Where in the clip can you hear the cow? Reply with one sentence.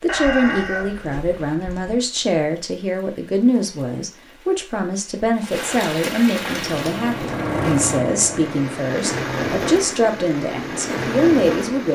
You can't hear the cow here.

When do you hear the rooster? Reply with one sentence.
The rooster can be heard from 0.1 to 2.0 s.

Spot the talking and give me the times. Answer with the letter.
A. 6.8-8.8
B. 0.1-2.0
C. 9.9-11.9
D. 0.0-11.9
D.